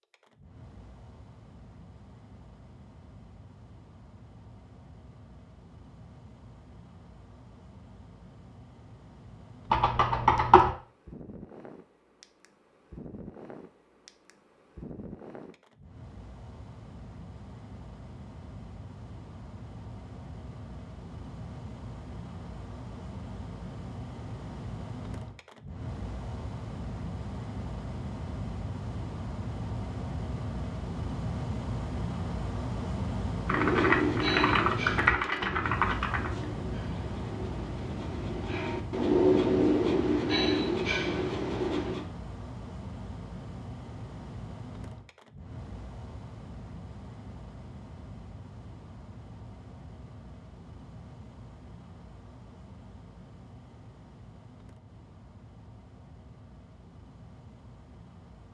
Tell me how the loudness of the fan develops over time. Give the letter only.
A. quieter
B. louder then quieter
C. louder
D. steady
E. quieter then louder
B.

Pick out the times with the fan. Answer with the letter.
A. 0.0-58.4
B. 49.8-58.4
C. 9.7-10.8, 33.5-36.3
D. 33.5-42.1
A.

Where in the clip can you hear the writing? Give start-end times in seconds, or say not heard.
33.5-42.1.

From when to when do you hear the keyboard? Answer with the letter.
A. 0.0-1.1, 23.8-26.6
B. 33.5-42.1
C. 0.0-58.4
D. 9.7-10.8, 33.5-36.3
D.